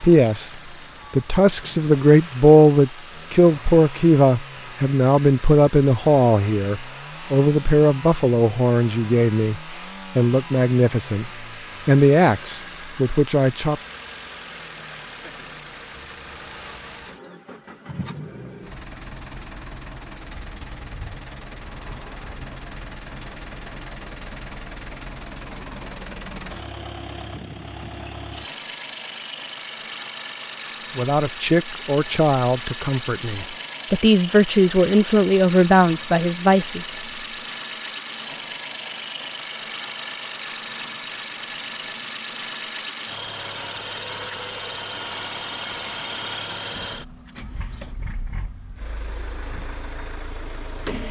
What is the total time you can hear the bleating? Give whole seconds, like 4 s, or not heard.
not heard.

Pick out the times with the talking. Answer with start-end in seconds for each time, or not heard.
0.0-13.8, 30.9-37.0.